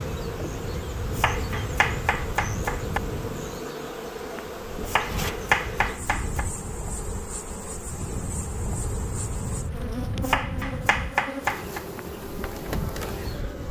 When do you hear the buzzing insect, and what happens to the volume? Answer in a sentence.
You can hear the buzzing insect from 0.0 to 13.6 s, at a steady volume.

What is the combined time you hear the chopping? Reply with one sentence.
The chopping can be heard for 5 seconds in total.